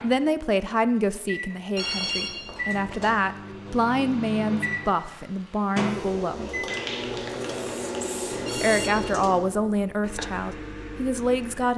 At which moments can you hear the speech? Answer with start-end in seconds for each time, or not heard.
0.0-6.7, 8.3-11.7.